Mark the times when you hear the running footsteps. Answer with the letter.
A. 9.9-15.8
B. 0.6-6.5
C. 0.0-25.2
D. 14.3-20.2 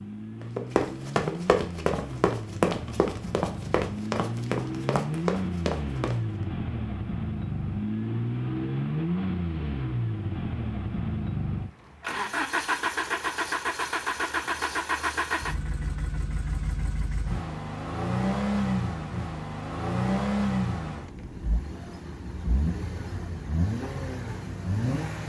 B.